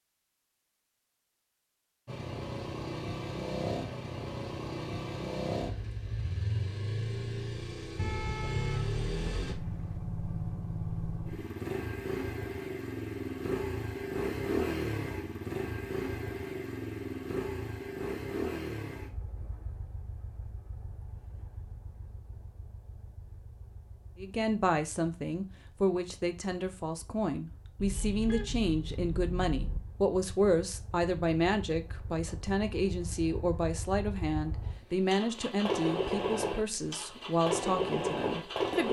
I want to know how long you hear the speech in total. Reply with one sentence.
You can hear the speech for 15 seconds altogether.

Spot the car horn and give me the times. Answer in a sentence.
You can hear the car horn from 8.0 to 10.0 s and from 27.8 to 29.8 s.